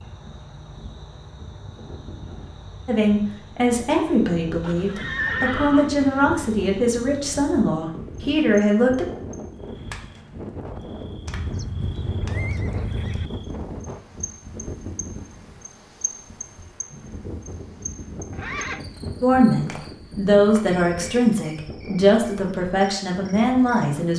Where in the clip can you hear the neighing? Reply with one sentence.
The neighing can be heard from 4.6 to 6.2 s, from 11.2 to 13.3 s and from 18.3 to 18.9 s.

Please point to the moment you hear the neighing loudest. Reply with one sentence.
The loudest moment of the neighing is at 5 seconds.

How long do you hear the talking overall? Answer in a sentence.
The talking can be heard for 11 seconds in total.